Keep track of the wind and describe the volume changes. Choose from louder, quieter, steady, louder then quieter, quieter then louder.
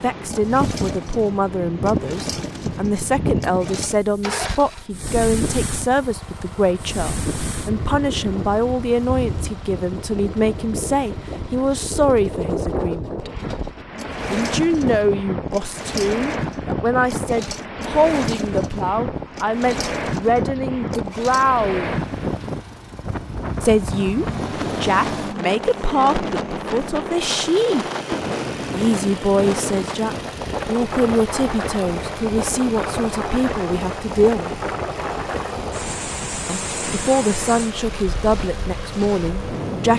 steady.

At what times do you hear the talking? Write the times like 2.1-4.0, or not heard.
0.0-13.3, 14.3-22.0, 23.6-27.9, 28.7-34.6, 36.5-39.9.